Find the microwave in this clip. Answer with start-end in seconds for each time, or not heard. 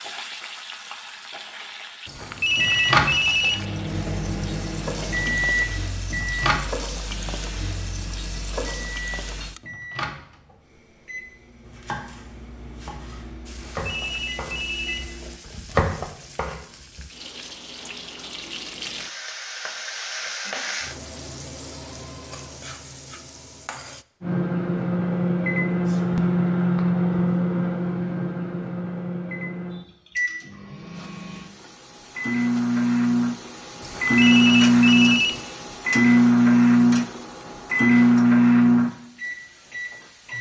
2.2-15.4, 24.2-40.3.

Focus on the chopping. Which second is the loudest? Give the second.
16 s.